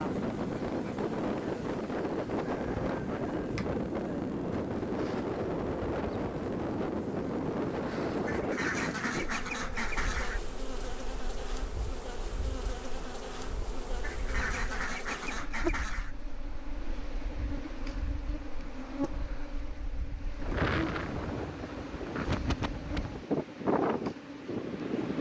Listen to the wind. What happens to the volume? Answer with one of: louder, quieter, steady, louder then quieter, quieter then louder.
quieter then louder.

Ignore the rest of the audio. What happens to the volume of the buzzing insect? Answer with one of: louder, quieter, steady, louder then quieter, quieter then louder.
steady.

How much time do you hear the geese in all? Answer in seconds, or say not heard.
4 s.